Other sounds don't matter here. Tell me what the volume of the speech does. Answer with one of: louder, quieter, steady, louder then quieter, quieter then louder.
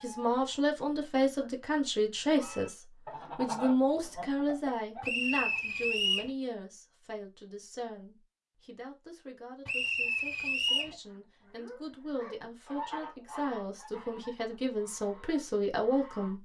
quieter then louder.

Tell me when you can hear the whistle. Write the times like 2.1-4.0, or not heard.
5.0-6.3, 9.7-10.9.